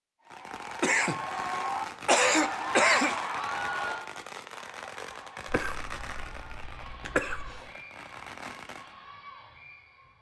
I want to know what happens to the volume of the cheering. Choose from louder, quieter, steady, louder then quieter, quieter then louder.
quieter.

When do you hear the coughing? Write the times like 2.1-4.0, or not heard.
0.8-3.2, 5.5-7.6.